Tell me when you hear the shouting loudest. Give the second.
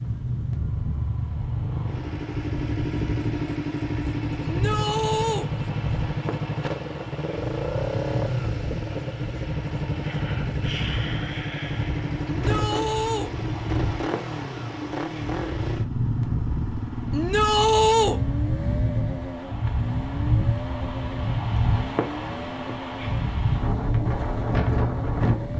18 s.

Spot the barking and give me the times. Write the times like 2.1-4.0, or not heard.
not heard.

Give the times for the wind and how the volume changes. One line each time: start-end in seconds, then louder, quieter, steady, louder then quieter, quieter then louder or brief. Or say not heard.
0.0-25.5 louder.